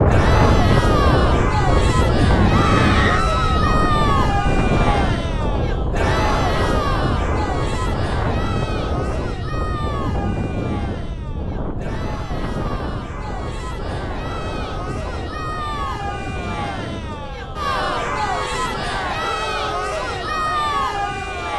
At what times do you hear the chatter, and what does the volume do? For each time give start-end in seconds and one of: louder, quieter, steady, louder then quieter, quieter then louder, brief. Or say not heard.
0.1-21.5 quieter then louder.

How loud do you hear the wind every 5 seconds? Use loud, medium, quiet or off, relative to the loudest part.
loud, medium, medium, quiet, quiet.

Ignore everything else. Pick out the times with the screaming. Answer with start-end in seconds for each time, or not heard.
2.5-3.8.